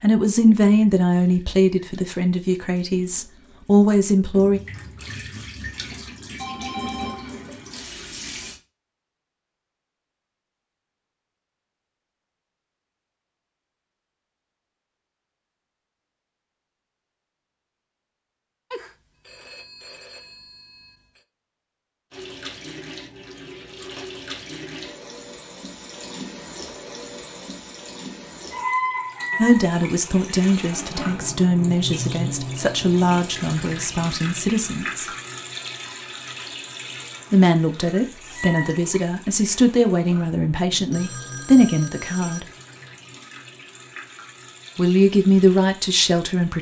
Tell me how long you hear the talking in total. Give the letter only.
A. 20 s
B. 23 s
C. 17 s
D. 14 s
C.